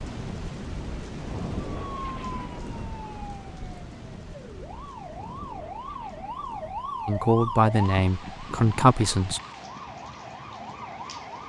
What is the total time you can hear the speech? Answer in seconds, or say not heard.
2 s.